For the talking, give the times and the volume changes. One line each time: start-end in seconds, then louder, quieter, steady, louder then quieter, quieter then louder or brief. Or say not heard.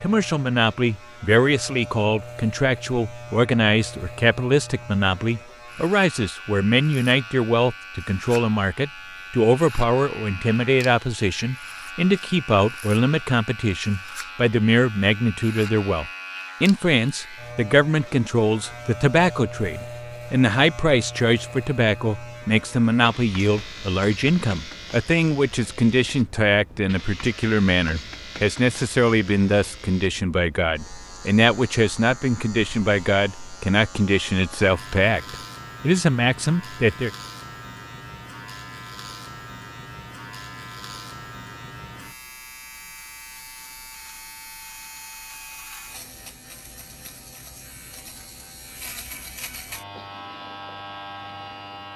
0.0-37.1 steady.